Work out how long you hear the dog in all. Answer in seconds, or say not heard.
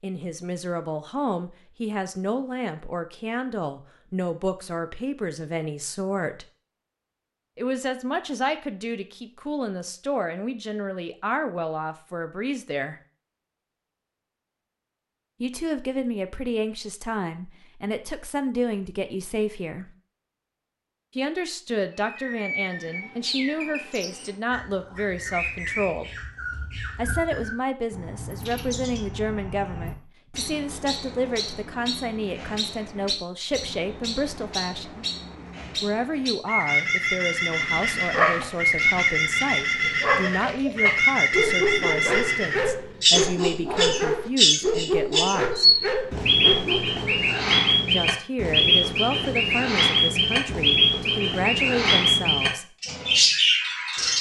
10 s.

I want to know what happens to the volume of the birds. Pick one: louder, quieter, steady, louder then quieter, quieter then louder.
louder.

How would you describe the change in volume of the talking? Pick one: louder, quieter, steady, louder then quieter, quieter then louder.
steady.